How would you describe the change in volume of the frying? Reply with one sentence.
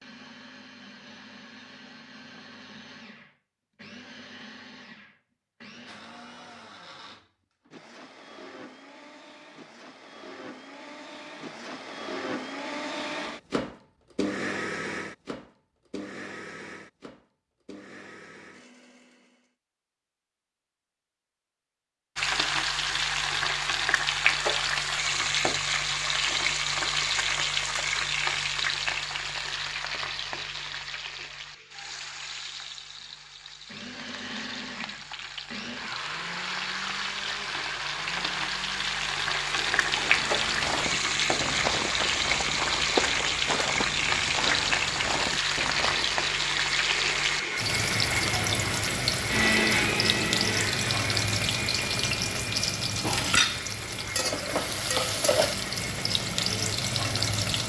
The volume of the frying goes down, then up.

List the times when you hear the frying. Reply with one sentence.
The frying can be heard from 22.1 to 57.6 s.